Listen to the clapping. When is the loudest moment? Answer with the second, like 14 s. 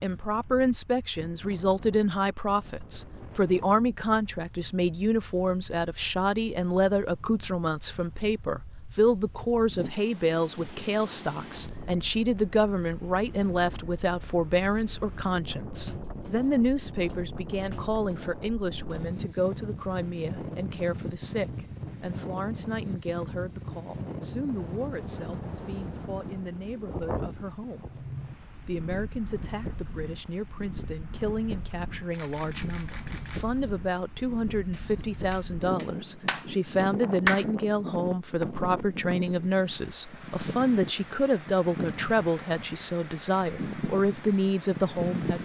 37 s.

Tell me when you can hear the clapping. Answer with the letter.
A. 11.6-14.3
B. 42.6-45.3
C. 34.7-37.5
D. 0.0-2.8
C.